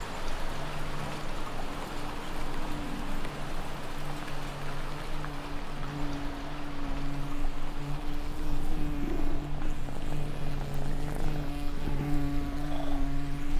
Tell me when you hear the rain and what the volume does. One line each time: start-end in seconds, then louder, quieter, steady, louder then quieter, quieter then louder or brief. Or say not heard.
0.0-13.5 quieter.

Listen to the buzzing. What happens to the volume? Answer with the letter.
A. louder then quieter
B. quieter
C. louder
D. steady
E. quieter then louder
C.